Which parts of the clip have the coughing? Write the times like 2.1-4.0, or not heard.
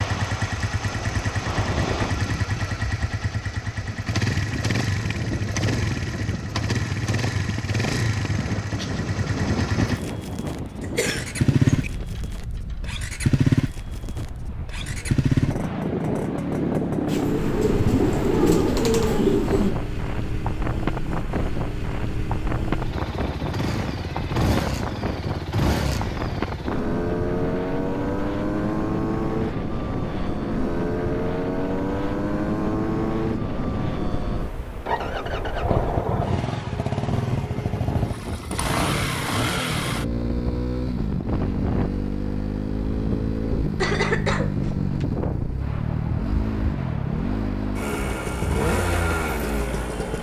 10.8-11.9, 43.8-45.0.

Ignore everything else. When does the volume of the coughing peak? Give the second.
44 s.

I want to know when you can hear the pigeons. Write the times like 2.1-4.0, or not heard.
17.1-19.8.